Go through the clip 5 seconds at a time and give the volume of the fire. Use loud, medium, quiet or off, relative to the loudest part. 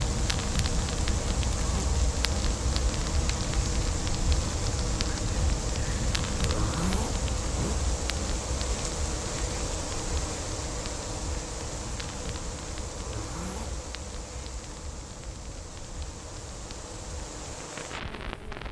loud, loud, medium, medium.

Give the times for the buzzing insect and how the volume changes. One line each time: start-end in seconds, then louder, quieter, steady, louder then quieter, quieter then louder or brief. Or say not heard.
0.0-18.6 quieter.